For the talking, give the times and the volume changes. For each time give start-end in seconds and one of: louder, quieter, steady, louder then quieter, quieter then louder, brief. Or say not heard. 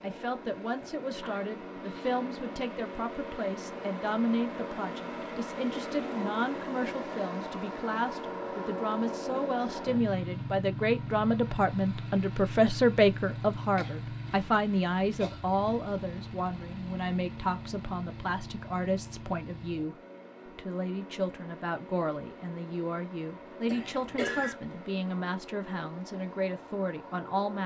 0.0-27.6 louder then quieter.